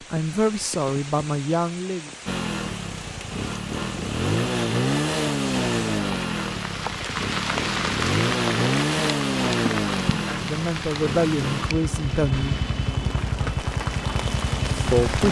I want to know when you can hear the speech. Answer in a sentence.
The speech can be heard from 0.1 to 2.1 s, from 10.1 to 12.7 s and from 14.8 to 15.2 s.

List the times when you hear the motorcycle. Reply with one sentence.
The motorcycle can be heard from 2.2 to 15.2 s.